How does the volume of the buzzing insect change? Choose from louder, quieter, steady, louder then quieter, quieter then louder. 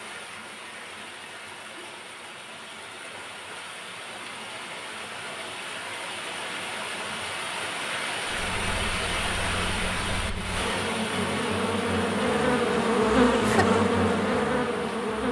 louder.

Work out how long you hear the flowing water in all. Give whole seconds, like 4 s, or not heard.
15 s.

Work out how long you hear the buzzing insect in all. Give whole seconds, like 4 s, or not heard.
7 s.